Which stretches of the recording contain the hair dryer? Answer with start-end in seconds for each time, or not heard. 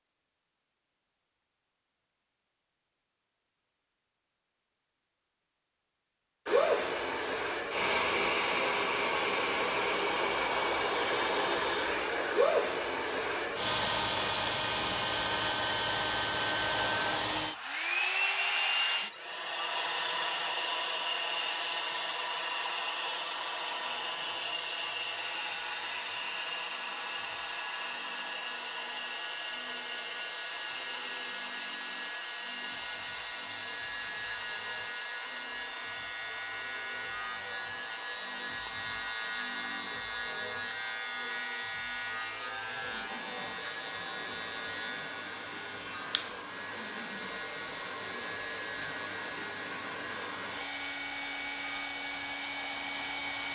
6.5-53.5.